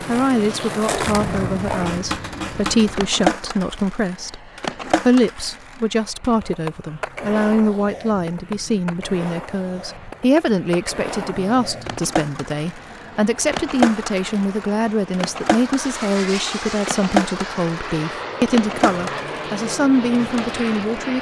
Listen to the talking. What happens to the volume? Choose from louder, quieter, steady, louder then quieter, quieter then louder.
steady.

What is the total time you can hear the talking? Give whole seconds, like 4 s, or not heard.
21 s.